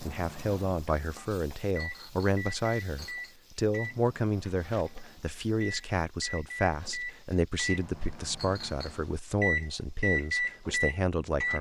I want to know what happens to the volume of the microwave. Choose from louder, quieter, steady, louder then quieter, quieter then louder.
louder.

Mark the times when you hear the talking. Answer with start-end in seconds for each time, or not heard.
0.0-11.5.